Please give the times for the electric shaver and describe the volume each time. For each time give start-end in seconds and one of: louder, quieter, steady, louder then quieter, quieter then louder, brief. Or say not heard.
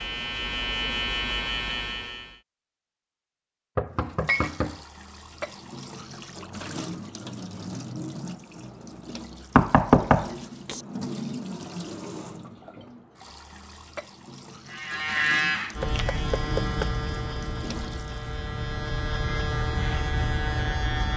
0.0-2.4 brief
14.7-21.1 quieter then louder.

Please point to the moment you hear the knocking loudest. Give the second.
10 s.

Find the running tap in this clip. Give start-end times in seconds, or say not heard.
3.9-18.4.